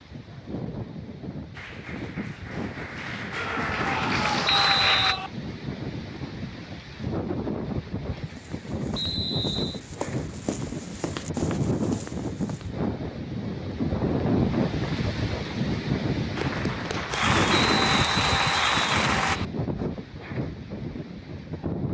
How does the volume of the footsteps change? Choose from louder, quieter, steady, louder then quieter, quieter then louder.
louder.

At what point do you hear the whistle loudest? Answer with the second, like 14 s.
5 s.